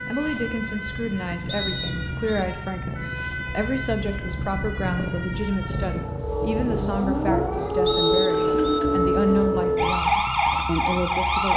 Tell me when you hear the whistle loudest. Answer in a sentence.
The loudest moment of the whistle is at 8 seconds.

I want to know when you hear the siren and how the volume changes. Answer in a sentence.
The siren can be heard from 0.0 to 11.5 s, getting louder.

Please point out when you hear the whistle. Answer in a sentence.
The whistle can be heard from 1.4 to 2.2 s and from 7.8 to 8.8 s.